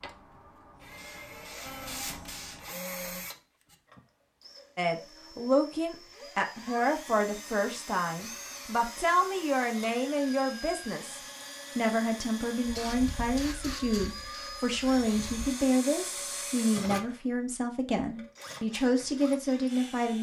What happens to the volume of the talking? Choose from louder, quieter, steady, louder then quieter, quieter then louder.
steady.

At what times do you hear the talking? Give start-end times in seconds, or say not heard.
4.8-20.1.